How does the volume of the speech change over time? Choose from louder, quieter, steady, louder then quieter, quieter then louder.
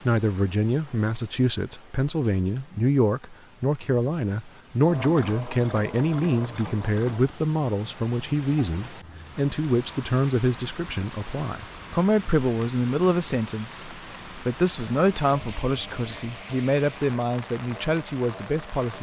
steady.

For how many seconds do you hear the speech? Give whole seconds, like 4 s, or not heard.
19 s.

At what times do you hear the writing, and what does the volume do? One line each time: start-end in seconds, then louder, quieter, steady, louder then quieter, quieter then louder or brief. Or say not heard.
not heard.